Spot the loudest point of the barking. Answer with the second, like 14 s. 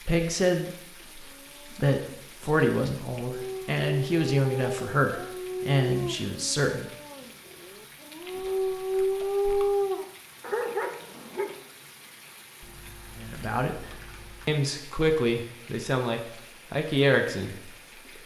10 s.